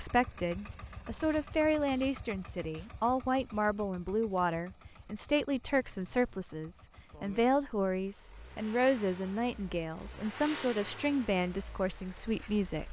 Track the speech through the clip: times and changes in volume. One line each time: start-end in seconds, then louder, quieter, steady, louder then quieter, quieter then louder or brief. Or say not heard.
0.0-12.8 steady.